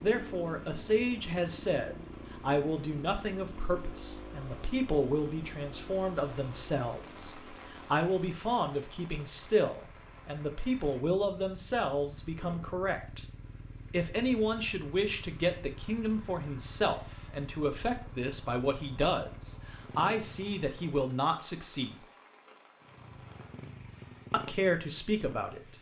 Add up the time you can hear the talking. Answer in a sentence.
You can hear the talking for 23 seconds altogether.